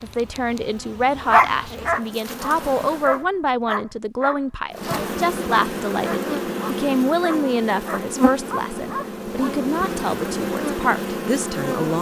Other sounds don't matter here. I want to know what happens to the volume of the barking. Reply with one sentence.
The volume of the barking goes down.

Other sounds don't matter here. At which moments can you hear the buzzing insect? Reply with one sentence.
The buzzing insect can be heard from 0.0 to 3.2 s and from 4.7 to 11.9 s.